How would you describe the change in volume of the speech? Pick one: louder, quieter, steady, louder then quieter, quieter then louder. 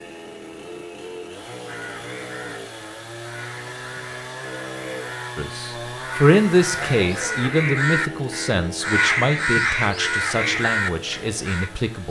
quieter.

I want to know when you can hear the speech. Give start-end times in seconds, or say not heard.
5.3-12.0.